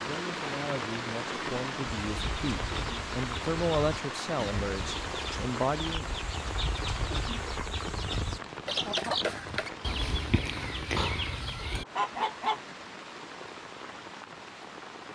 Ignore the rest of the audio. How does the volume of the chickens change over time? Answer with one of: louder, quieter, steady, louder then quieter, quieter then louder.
louder.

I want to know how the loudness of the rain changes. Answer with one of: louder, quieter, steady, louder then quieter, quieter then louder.
quieter.